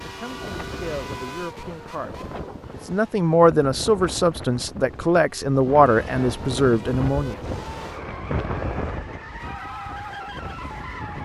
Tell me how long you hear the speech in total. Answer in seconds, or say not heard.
7 s.